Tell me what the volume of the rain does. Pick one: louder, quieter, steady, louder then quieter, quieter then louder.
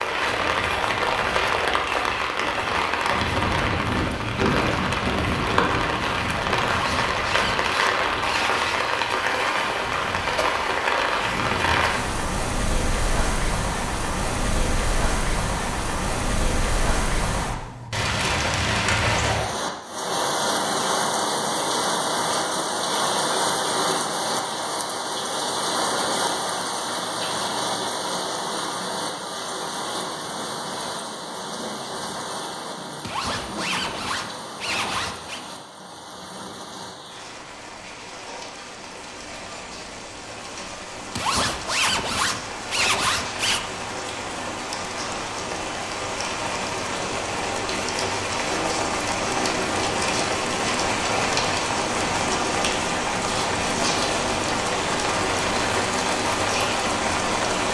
quieter then louder.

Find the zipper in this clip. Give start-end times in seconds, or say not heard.
6.7-8.8, 33.0-35.4, 41.1-43.6.